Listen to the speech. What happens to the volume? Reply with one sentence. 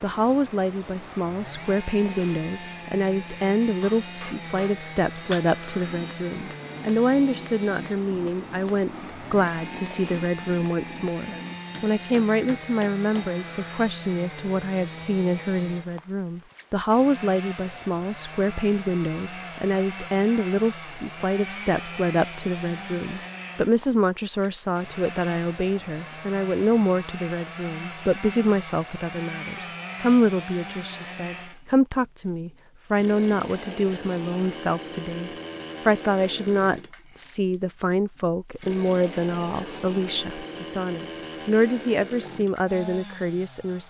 The loudness of the speech stays about the same.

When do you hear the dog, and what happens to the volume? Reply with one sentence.
The dog can't be heard in this clip.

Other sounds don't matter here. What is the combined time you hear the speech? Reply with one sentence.
You can hear the speech for 44 seconds altogether.